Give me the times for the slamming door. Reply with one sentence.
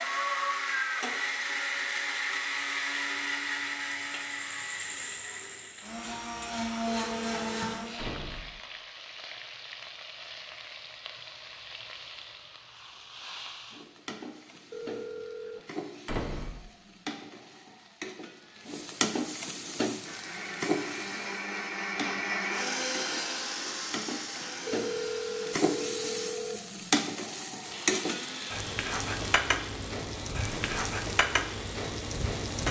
You can hear the slamming door from 8.0 to 8.6 s, from 16.1 to 16.6 s and from 30.4 to 30.9 s.